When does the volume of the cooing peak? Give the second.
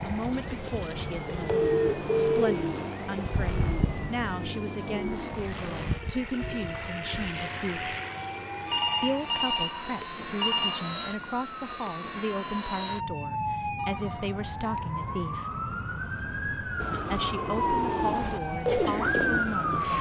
19 s.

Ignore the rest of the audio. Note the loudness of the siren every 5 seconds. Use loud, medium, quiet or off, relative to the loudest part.
quiet, medium, medium, loud.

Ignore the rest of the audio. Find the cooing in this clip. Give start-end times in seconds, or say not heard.
0.0-8.9, 16.8-19.9.